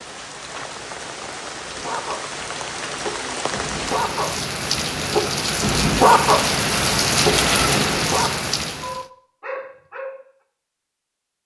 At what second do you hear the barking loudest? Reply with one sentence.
The loudest moment of the barking is at 6 seconds.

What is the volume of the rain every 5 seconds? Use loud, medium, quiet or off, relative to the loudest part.
medium, loud, off.